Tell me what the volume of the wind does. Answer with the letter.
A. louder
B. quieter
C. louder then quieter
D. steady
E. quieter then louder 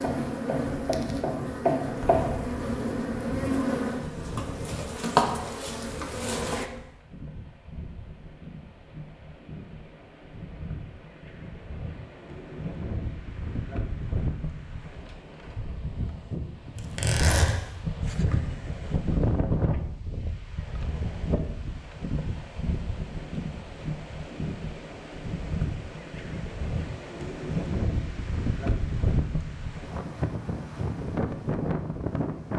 A.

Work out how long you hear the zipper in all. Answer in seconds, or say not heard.
2 s.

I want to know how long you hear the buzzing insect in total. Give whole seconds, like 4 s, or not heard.
7 s.